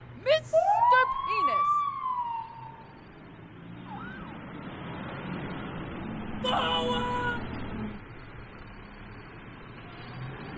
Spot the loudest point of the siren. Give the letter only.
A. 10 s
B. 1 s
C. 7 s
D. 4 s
B.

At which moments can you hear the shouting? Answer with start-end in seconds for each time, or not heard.
0.1-1.6, 6.4-7.4.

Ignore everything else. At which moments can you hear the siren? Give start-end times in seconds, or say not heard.
0.0-4.4.